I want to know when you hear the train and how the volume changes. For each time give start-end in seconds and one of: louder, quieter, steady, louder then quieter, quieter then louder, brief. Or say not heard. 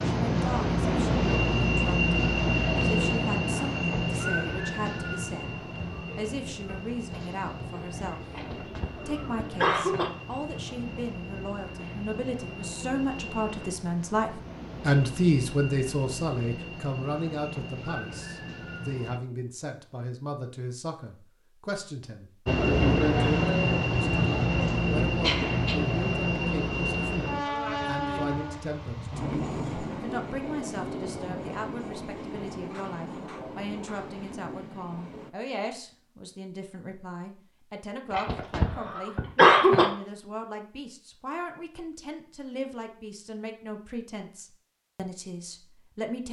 0.0-19.2 quieter
22.4-35.4 quieter.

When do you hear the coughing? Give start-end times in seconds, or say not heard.
8.3-10.1, 25.2-25.8, 38.1-39.9.